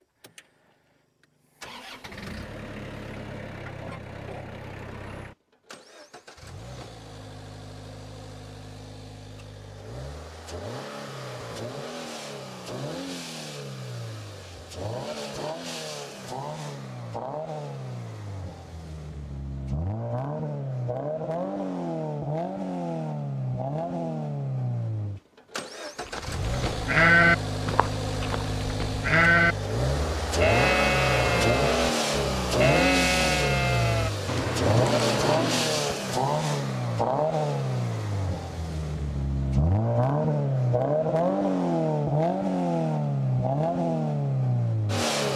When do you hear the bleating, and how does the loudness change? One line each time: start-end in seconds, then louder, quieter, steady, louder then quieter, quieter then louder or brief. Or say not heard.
26.1-36.0 quieter.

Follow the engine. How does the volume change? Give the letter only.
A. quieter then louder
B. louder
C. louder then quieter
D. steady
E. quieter
B.